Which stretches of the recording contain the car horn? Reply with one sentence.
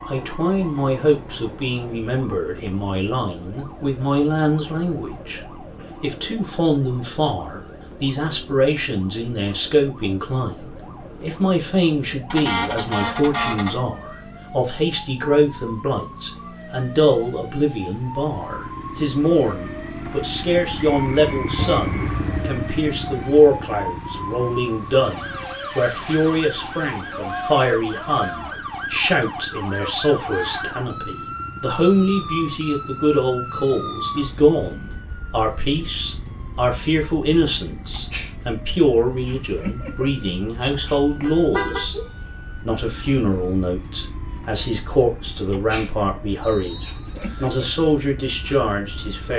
The car horn can be heard from 12.3 to 13.8 s, from 21.6 to 22.6 s and from 41.2 to 41.9 s.